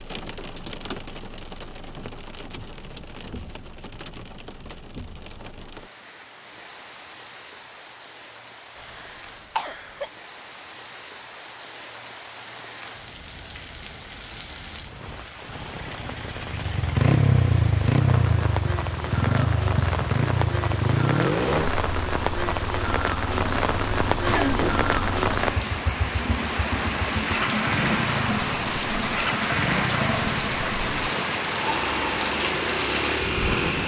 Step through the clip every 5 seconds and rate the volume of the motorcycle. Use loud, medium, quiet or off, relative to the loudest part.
off, off, off, loud, medium, medium, medium.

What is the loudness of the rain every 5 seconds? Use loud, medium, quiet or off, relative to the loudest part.
quiet, quiet, quiet, medium, loud, loud, loud.